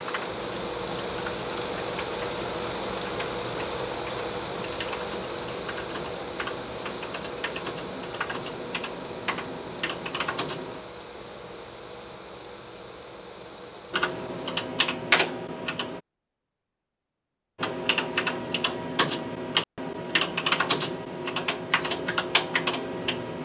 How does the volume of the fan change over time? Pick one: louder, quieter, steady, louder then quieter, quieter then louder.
quieter.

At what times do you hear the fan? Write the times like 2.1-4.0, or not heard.
0.0-14.6.